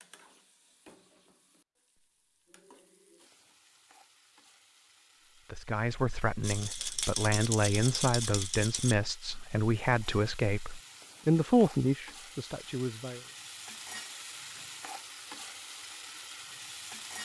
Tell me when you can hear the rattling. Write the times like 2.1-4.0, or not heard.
6.4-8.9.